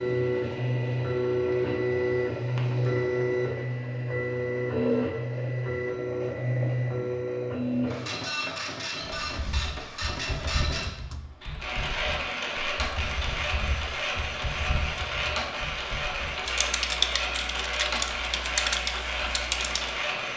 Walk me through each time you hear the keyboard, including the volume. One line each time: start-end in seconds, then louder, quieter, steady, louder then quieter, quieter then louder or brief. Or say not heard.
9.1-19.9 louder.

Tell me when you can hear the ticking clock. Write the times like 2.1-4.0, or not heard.
not heard.